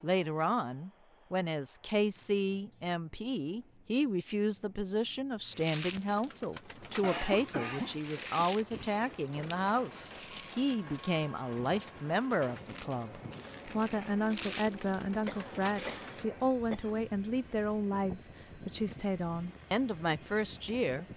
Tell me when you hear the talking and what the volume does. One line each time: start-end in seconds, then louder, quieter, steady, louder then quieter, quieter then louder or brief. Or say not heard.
0.0-21.1 steady.